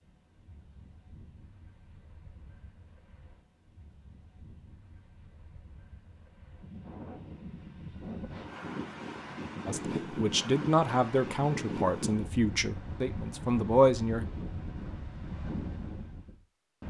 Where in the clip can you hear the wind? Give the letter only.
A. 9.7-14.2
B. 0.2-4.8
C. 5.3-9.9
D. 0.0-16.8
D.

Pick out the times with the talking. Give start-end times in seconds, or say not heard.
9.7-14.2.